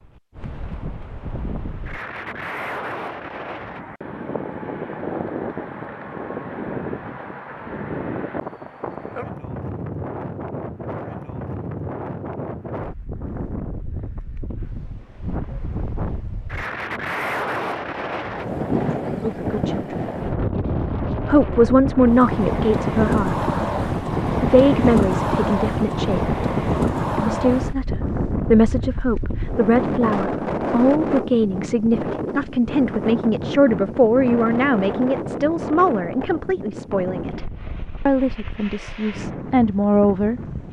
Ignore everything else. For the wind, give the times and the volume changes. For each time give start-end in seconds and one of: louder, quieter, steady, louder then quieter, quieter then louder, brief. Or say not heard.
0.0-40.6 louder then quieter.